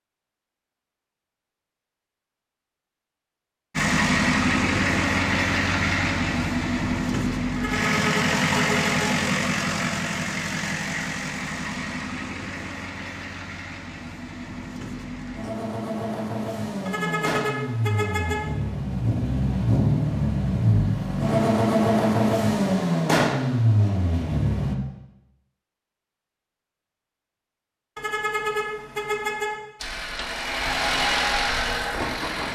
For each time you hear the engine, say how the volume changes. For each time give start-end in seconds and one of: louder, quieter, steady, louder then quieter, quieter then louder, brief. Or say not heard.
3.8-24.8 quieter then louder
29.8-32.5 brief.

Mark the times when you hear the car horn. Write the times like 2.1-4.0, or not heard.
7.5-9.2, 16.9-18.4, 27.9-29.6.